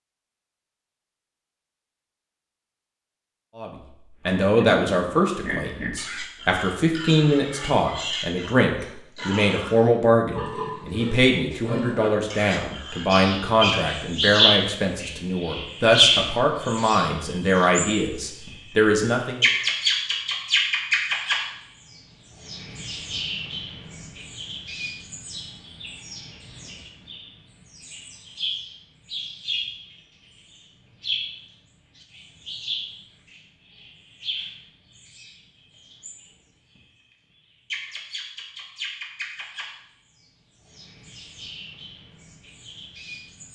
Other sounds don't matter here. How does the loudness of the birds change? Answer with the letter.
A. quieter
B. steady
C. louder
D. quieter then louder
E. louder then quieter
A.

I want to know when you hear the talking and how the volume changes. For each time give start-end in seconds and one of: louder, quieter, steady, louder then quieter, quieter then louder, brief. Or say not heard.
3.5-19.4 steady.